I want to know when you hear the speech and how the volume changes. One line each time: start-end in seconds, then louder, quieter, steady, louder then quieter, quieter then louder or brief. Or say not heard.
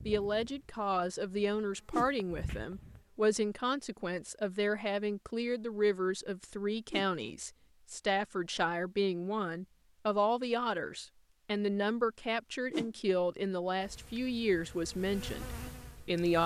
0.1-16.4 steady.